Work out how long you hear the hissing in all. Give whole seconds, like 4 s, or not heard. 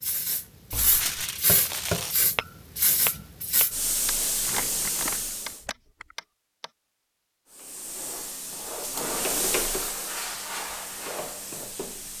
10 s.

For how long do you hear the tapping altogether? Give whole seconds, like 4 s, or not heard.
6 s.